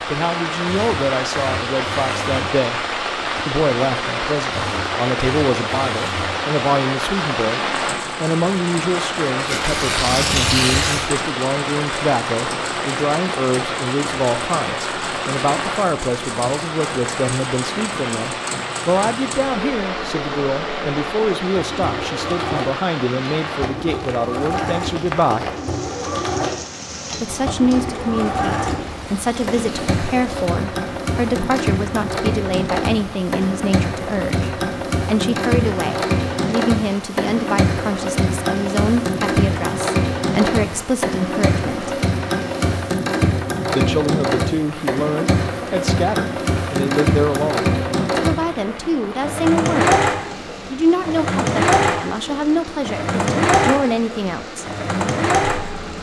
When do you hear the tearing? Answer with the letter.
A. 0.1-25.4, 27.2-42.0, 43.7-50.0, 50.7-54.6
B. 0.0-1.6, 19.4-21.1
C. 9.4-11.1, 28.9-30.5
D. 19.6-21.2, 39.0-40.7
C.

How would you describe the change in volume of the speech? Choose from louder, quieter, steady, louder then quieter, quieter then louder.
steady.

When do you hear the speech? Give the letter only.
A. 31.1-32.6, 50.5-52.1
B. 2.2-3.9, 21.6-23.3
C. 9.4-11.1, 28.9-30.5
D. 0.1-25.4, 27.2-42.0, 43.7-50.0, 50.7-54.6
D.